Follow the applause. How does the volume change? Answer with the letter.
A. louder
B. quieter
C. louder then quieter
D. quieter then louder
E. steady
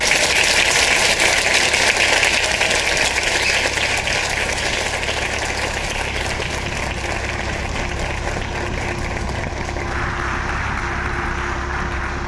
B.